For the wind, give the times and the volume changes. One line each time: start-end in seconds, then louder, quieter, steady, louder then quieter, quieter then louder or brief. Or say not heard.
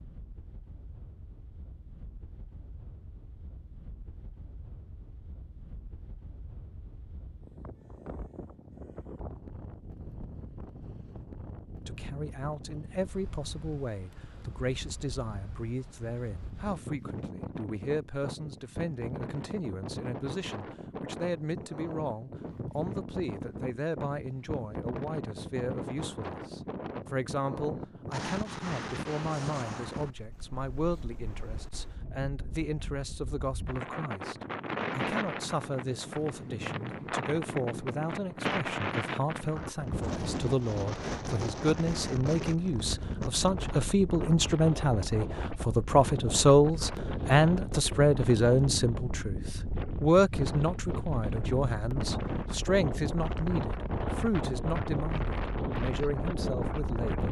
0.0-57.2 louder.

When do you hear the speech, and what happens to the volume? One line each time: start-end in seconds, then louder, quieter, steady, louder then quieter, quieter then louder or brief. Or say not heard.
11.8-57.2 louder.